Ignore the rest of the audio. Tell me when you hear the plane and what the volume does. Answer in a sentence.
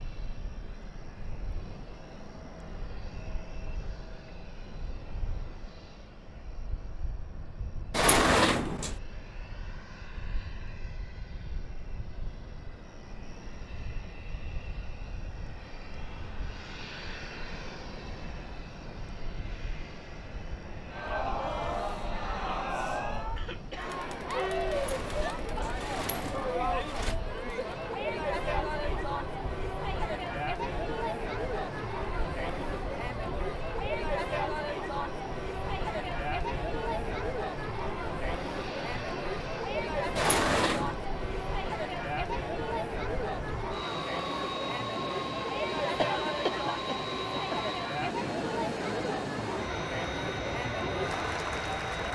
The plane can be heard from 0.0 to 52.1 s, getting louder.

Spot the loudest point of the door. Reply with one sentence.
The loudest moment of the door is at 8 seconds.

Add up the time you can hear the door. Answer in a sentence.
The door can be heard for 4 seconds in total.